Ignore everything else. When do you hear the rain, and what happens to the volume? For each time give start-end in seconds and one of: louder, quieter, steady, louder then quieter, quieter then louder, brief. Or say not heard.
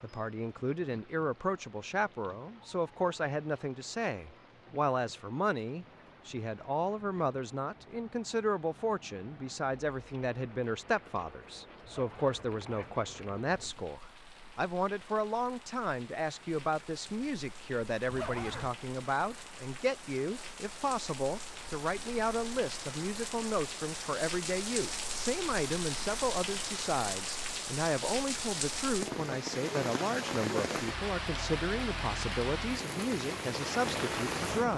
0.0-34.7 louder.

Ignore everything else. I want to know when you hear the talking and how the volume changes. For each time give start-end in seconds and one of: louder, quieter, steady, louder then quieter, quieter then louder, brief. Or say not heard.
0.0-34.7 steady.